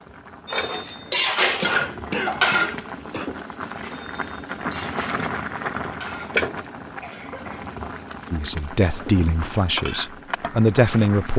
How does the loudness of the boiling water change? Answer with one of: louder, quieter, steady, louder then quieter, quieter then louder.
louder then quieter.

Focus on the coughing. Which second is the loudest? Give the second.
2 s.